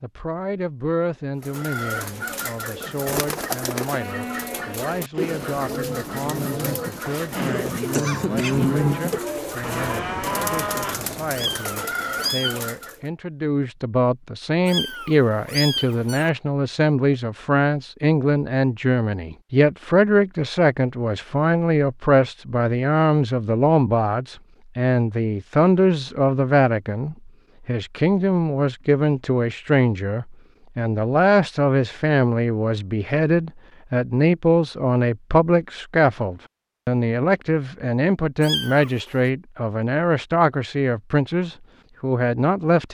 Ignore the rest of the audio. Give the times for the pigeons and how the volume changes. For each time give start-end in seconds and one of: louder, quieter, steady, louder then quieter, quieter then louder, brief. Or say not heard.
1.4-13.0 steady.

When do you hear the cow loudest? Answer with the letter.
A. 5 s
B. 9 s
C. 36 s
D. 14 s
B.